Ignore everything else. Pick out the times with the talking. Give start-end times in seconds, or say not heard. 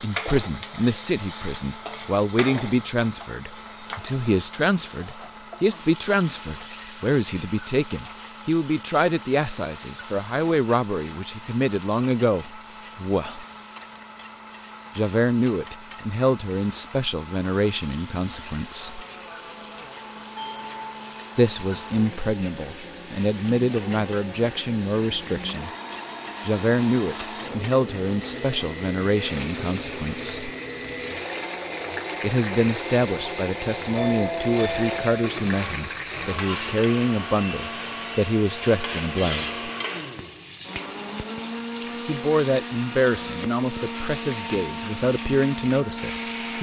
0.0-13.4, 14.9-19.1, 21.4-25.7, 26.4-30.5, 32.2-39.7, 42.0-46.5.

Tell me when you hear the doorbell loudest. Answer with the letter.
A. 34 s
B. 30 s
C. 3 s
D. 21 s
A.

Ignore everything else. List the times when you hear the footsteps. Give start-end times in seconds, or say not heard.
not heard.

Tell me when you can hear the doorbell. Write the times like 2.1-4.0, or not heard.
20.4-20.8, 34.0-35.2.